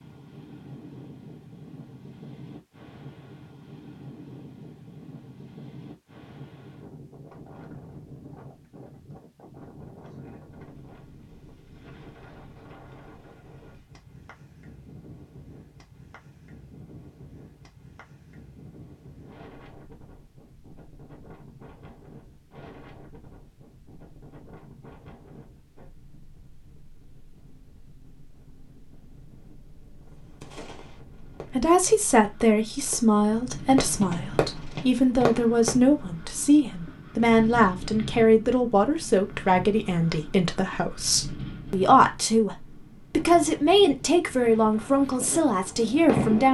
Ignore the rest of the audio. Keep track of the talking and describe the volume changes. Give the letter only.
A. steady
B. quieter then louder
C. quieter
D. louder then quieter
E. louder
A.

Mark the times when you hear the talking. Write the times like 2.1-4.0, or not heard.
31.5-46.4.